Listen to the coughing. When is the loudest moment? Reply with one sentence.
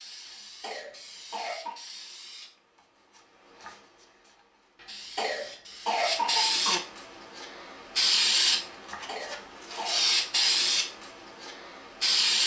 The loudest moment of the coughing is at 6 seconds.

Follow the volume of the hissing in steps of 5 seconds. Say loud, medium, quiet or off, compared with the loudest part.
quiet, loud, loud.